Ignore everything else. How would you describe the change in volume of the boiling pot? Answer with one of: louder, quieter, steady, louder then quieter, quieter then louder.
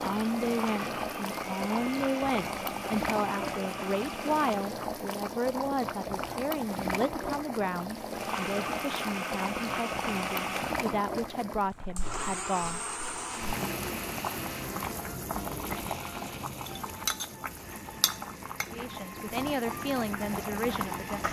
steady.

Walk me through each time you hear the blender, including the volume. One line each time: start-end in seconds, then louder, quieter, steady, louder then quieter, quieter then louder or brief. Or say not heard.
0.0-4.8 steady
8.1-21.2 quieter.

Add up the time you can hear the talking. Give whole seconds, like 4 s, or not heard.
15 s.